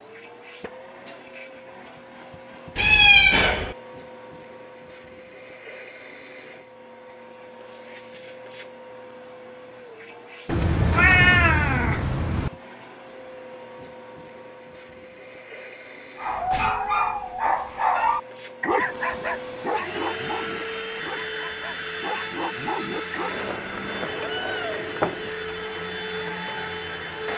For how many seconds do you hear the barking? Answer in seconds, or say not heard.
7 s.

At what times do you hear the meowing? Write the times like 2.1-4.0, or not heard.
2.8-3.8, 10.4-12.5, 23.3-25.3.